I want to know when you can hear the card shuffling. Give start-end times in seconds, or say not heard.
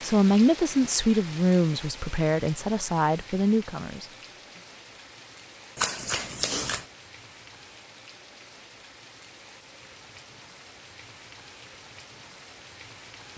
5.8-6.8.